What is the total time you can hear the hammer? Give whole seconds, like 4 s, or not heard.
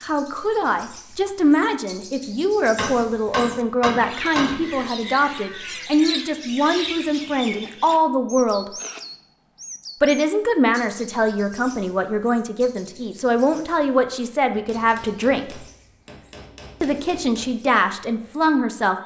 5 s.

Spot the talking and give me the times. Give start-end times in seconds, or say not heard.
0.0-8.7, 10.0-15.6, 16.8-18.9.